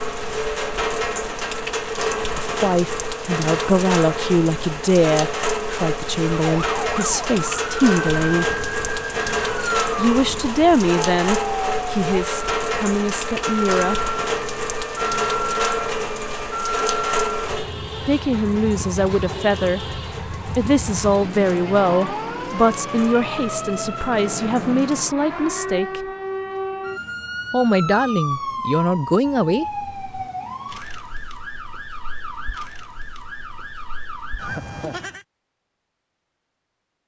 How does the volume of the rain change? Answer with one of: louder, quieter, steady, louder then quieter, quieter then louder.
quieter.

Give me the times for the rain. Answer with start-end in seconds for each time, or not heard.
0.0-25.1.